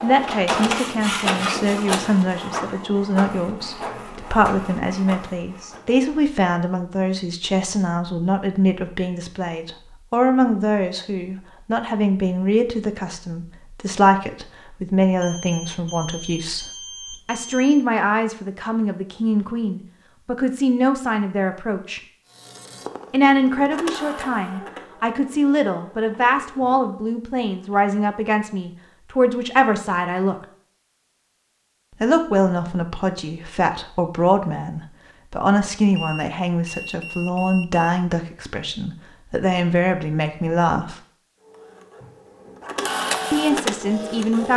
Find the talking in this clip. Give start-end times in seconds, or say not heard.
0.0-16.6, 17.2-22.0, 23.1-30.4, 32.0-41.0, 43.3-44.5.